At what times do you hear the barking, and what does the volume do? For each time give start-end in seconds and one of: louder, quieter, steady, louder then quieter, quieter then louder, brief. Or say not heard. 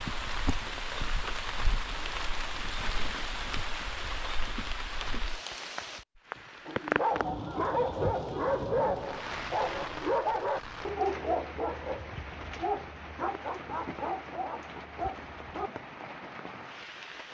6.7-15.7 quieter.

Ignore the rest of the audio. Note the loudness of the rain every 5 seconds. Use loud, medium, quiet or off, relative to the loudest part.
loud, loud, medium, medium.